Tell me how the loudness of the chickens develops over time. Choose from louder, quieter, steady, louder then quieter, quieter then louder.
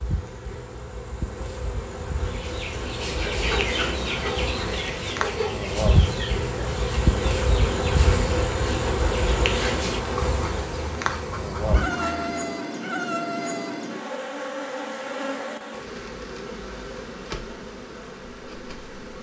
quieter.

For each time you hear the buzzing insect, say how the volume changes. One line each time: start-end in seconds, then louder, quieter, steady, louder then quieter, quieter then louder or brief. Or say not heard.
0.0-19.1 louder then quieter.